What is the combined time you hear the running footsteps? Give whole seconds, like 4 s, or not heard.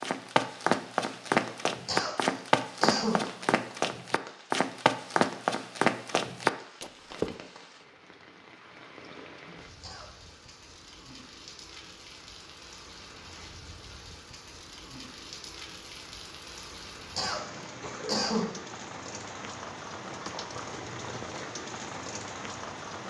7 s.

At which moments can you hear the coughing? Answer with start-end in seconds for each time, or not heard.
1.9-3.2, 9.8-10.3, 17.1-18.5.